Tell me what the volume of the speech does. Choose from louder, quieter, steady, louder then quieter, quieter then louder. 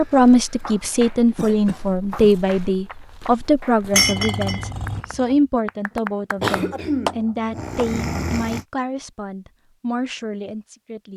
quieter.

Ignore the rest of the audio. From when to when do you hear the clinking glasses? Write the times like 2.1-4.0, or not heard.
3.9-5.0.